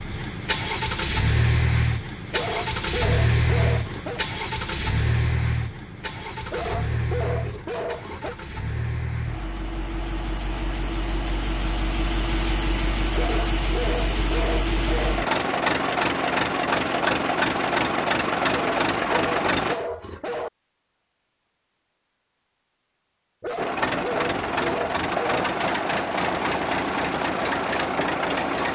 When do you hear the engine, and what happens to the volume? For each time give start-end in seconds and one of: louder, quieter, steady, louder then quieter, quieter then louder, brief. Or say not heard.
0.0-19.8 quieter then louder
23.6-28.6 steady.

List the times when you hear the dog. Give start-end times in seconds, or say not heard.
2.3-4.2, 6.5-8.3, 13.1-15.2, 18.5-20.5, 23.4-25.4.